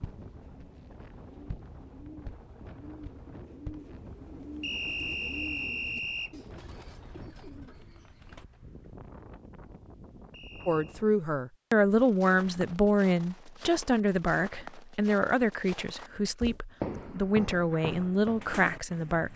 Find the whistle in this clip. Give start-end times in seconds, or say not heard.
4.6-6.3, 10.3-11.0.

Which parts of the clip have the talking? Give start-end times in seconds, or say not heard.
10.7-19.3.